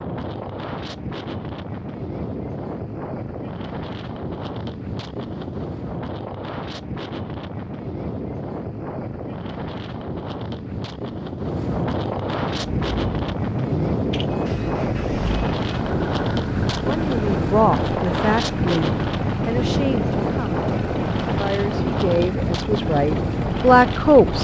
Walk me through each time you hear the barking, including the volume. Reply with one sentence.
The barking can't be heard in this clip.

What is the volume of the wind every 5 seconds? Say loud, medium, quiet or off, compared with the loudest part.
medium, medium, loud, loud, loud.